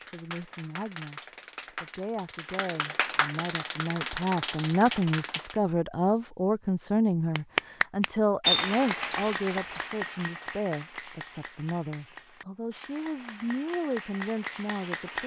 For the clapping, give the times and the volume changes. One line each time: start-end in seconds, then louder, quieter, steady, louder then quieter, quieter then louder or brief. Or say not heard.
0.0-5.6 louder
7.3-15.2 quieter then louder.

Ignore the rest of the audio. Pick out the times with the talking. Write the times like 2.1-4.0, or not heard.
0.0-15.2.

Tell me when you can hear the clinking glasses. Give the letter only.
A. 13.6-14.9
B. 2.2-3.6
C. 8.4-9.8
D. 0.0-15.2
C.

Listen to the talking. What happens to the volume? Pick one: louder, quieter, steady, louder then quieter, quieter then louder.
louder then quieter.